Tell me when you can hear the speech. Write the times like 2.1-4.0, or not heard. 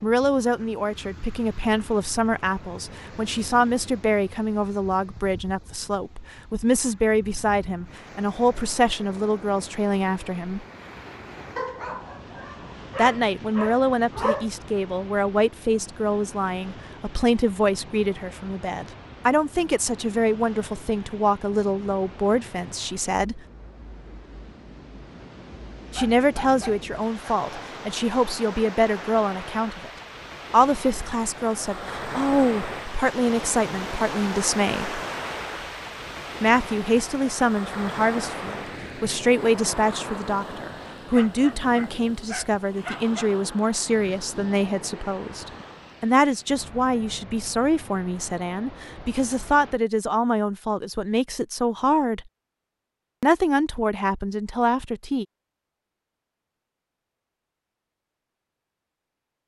0.0-10.7, 12.9-23.4, 25.9-29.9, 30.5-35.0, 36.4-52.2, 53.2-55.2.